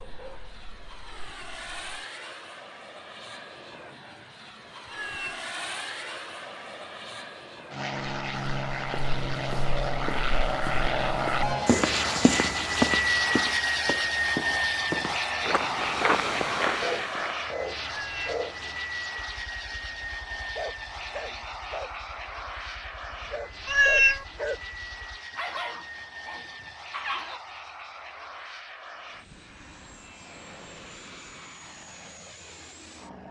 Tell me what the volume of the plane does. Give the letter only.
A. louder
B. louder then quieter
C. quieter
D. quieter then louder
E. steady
B.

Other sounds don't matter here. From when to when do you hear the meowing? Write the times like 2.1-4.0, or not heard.
4.9-5.5, 17.9-18.3, 23.6-24.2.